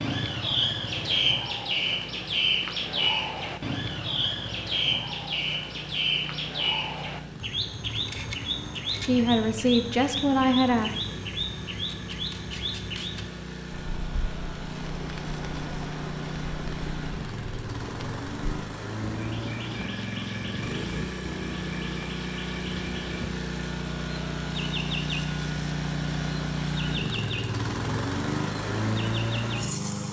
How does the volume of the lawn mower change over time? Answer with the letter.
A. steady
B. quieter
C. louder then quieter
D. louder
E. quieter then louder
D.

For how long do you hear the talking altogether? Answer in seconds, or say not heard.
2 s.